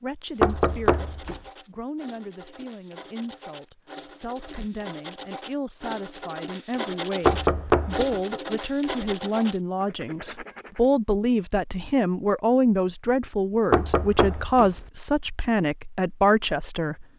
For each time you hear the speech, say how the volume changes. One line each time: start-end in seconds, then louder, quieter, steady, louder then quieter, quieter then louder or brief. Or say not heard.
0.0-17.1 louder.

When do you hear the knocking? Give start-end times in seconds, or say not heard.
0.4-1.4, 7.2-8.2, 13.7-14.9.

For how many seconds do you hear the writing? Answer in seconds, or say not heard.
11 s.